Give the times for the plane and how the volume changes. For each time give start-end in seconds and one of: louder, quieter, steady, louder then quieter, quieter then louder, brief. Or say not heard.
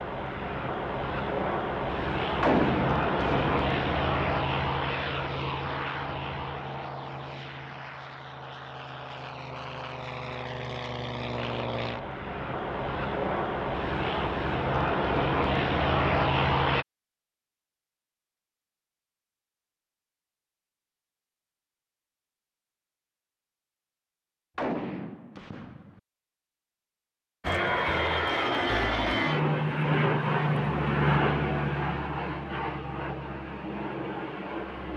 0.0-16.9 quieter then louder
27.4-34.9 quieter.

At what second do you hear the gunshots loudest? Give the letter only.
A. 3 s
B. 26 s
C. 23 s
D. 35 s
A.